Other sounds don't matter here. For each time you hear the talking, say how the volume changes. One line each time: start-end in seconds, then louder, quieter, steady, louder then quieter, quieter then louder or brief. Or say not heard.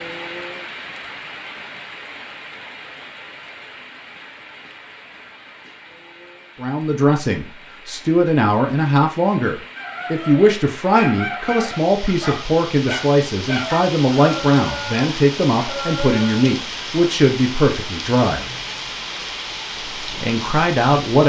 6.6-18.4 steady
20.0-21.2 brief.